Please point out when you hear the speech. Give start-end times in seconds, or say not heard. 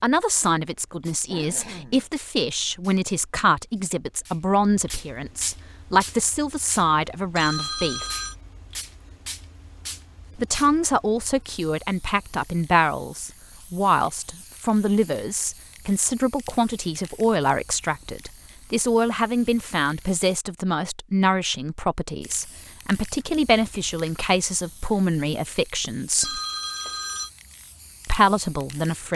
0.0-8.1, 10.3-26.4, 28.1-29.1.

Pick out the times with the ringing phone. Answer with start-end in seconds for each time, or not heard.
7.3-8.3, 26.2-27.3.